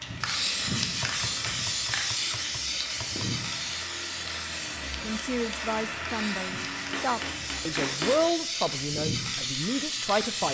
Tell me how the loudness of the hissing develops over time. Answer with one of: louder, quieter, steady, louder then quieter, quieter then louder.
quieter then louder.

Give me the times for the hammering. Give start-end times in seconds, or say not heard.
1.0-3.5, 6.9-8.3.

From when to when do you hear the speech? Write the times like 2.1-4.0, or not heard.
5.0-10.4.